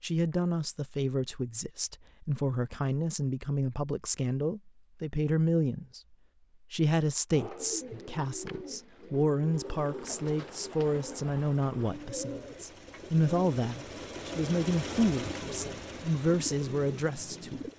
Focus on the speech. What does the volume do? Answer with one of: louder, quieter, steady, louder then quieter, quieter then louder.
steady.